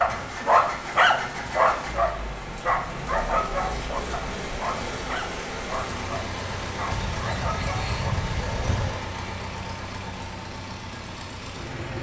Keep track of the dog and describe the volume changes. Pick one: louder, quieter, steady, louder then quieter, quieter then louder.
quieter.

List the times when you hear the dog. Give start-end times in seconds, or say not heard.
0.0-9.0.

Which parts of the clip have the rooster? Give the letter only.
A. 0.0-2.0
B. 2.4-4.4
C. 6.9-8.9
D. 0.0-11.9
C.